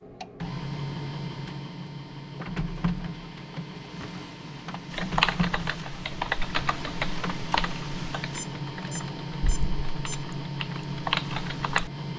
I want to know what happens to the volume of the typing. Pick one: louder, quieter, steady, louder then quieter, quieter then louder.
quieter then louder.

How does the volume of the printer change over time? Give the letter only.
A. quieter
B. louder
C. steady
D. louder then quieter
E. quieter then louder
C.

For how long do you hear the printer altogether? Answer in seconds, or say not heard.
12 s.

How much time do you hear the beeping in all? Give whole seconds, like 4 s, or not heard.
2 s.